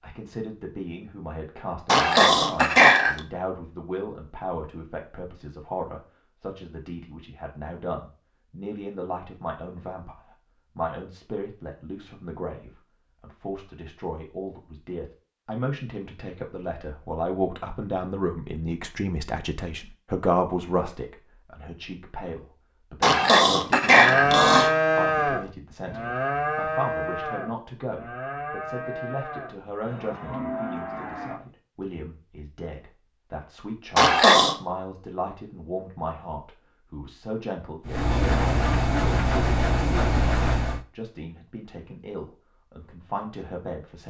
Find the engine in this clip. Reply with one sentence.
You can hear the engine from 37.9 to 40.9 s.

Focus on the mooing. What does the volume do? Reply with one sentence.
The loudness of the mooing goes down.